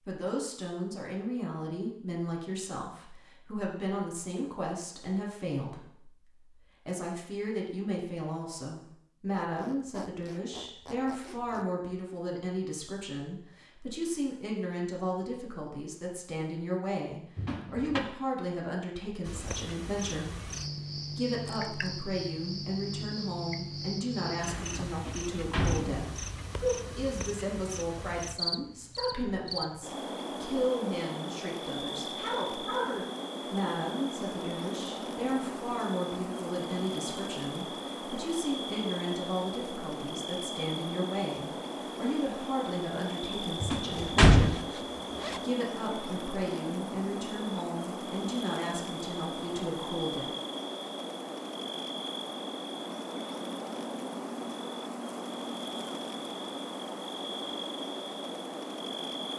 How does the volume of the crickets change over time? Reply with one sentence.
The loudness of the crickets stays about the same.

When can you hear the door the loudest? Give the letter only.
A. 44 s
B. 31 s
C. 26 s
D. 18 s
A.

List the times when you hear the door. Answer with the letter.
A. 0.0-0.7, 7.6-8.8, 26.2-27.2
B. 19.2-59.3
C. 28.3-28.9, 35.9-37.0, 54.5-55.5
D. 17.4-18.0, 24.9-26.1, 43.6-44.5
D.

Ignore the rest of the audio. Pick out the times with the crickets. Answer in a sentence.
You can hear the crickets from 19.2 to 59.3 s.